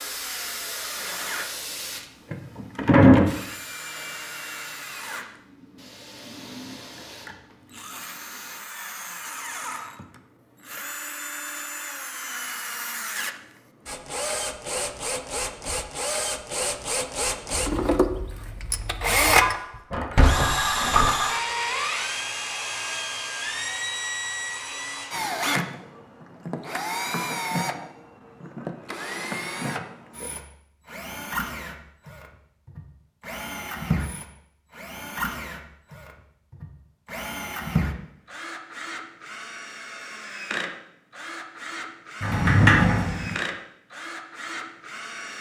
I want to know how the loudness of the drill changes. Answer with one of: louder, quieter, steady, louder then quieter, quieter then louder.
louder then quieter.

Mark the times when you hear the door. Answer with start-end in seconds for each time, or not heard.
2.3-3.3, 19.9-21.1, 42.2-43.4.